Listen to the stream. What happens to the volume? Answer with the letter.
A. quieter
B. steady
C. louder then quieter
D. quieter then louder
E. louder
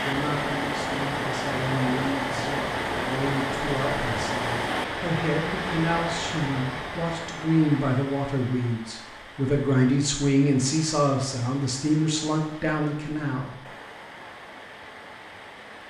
A.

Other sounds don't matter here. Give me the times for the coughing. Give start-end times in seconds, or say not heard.
not heard.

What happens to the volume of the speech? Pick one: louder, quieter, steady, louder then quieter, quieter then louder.
louder.